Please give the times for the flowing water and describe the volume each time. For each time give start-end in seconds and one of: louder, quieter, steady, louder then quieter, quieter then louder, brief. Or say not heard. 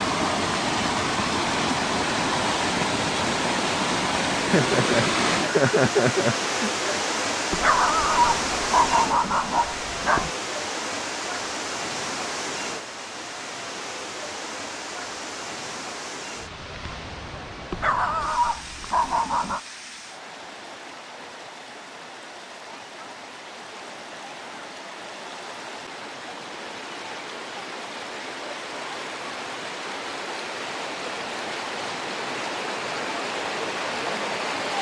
0.0-34.7 quieter then louder.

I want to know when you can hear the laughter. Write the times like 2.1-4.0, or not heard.
4.5-7.0.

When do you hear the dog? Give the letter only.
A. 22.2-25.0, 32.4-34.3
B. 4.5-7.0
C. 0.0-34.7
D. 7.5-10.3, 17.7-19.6
D.